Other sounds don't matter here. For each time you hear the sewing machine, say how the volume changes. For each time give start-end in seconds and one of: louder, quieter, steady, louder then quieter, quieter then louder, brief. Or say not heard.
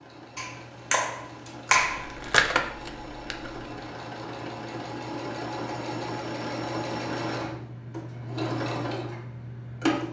0.0-10.0 louder.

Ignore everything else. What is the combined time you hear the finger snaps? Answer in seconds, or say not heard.
2 s.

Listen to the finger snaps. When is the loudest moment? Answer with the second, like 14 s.
2 s.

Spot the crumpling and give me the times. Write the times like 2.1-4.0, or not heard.
1.9-3.6.